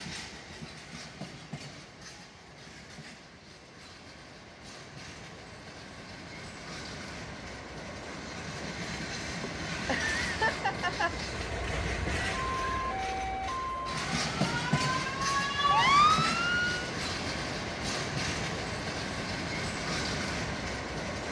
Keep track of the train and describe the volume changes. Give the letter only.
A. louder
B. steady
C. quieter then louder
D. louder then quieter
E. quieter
A.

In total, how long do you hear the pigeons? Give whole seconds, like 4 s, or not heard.
not heard.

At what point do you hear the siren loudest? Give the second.
16 s.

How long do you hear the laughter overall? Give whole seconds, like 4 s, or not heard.
2 s.